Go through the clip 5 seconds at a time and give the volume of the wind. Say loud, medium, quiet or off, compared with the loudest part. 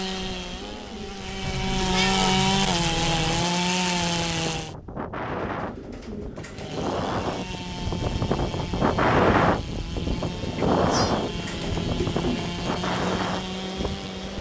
quiet, loud, loud.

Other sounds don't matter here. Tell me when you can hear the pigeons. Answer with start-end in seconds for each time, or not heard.
0.1-1.9, 5.5-7.0, 10.3-12.6.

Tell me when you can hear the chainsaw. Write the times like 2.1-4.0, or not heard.
0.0-4.8, 6.5-14.3.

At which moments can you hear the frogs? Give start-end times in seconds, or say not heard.
not heard.